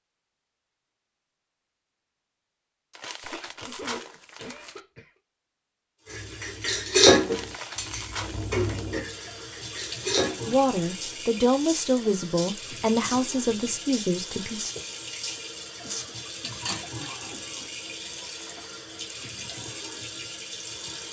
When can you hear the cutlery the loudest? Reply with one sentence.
The loudest moment of the cutlery is at 7 seconds.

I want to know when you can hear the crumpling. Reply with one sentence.
You can hear the crumpling from 2.9 to 4.8 s, from 7.2 to 8.9 s and from 18.1 to 18.6 s.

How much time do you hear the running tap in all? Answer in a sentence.
You can hear the running tap for 15 seconds altogether.